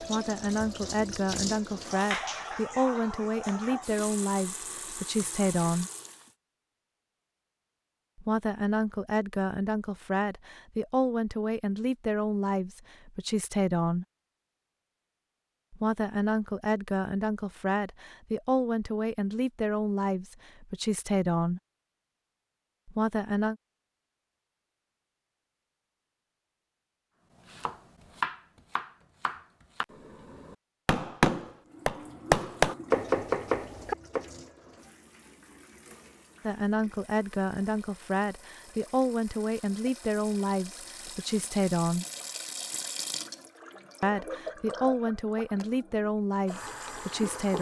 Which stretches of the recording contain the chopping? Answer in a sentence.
You can hear the chopping from 27.4 to 34.2 s.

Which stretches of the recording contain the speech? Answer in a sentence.
You can hear the speech from 0.0 to 5.9 s, from 8.2 to 14.1 s, from 15.7 to 21.6 s, from 22.9 to 23.6 s, from 36.4 to 42.0 s and from 44.0 to 47.5 s.